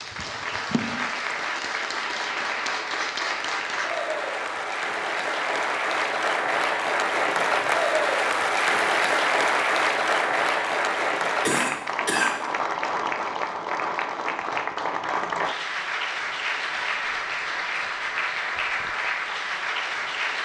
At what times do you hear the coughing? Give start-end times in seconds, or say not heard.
11.4-12.3.